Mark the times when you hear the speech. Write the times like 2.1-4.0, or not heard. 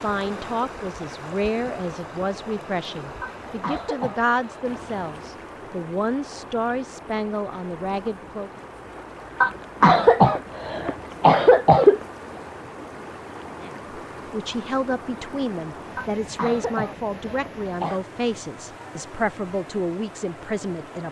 0.0-8.6, 13.6-21.0.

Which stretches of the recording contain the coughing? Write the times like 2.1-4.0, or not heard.
3.2-4.8, 9.4-12.0, 15.9-18.0.